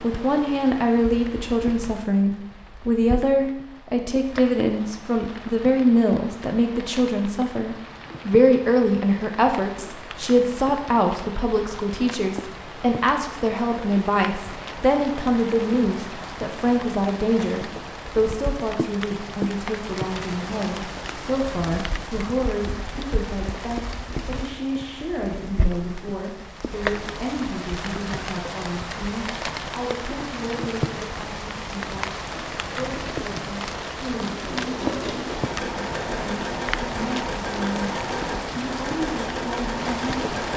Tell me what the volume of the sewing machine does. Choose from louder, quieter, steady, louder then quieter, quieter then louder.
louder.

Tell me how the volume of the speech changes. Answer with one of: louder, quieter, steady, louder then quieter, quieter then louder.
quieter.